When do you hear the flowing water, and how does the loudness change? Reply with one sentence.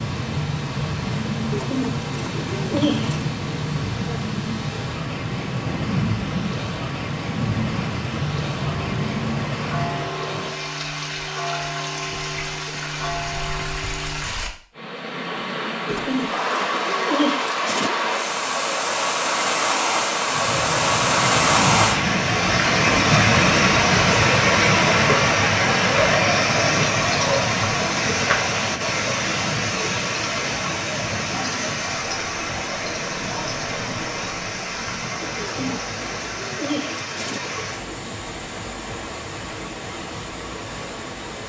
The flowing water can be heard from 0.0 to 41.4 s, getting louder then quieter.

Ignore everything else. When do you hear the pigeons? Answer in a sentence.
You can hear the pigeons from 1.5 to 3.2 s, from 15.8 to 17.9 s and from 35.5 to 37.4 s.